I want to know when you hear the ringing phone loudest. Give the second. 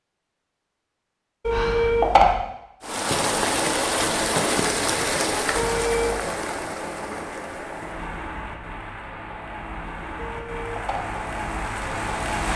2 s.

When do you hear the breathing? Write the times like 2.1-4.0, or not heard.
1.5-1.9.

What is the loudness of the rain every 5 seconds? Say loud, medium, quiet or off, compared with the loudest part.
loud, medium, medium.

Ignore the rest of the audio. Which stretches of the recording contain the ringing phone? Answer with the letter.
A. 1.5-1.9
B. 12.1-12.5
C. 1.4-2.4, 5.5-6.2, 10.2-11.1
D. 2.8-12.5
C.